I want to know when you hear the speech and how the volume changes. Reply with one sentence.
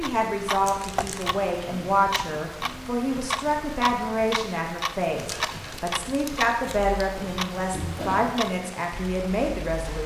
You can hear the speech from 0.0 to 10.0 s, at a steady volume.